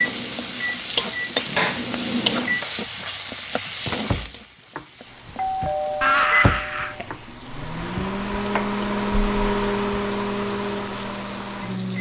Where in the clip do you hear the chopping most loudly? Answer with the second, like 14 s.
2 s.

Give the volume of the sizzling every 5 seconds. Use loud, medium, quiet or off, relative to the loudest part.
loud, quiet, quiet.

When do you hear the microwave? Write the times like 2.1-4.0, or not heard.
0.0-2.6, 5.1-11.9.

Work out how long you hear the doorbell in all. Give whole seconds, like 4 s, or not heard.
2 s.